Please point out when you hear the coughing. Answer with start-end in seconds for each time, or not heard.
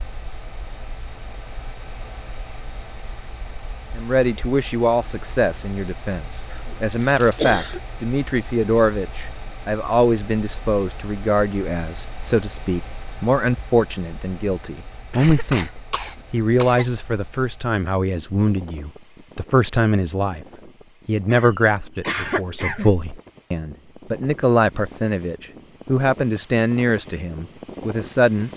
6.5-7.8, 15.1-16.9, 21.3-23.1.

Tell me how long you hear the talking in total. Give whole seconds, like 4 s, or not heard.
24 s.